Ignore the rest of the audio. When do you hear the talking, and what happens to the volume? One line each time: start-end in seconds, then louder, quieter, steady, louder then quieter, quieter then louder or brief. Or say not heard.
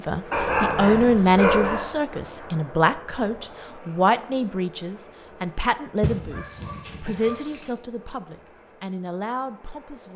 0.1-10.1 quieter.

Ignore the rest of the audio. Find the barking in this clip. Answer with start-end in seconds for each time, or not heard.
0.3-1.9, 6.0-7.7.